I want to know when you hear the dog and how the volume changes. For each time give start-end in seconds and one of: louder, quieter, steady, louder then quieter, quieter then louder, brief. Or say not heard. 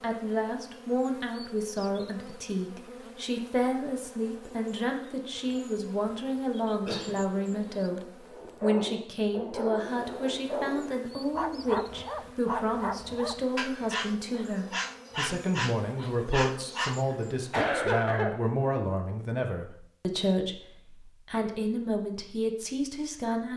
8.2-17.1 steady.